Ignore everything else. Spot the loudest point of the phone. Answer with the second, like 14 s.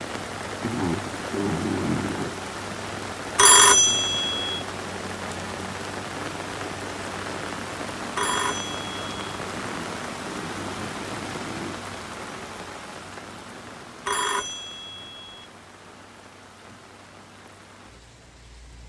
4 s.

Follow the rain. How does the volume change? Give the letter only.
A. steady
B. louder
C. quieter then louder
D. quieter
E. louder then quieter
D.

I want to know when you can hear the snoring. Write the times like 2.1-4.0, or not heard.
0.6-2.4, 9.6-11.8.